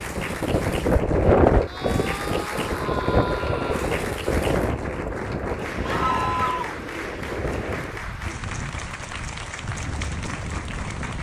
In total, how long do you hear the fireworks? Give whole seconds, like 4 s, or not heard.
not heard.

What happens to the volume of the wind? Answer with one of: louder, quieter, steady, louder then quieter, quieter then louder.
quieter.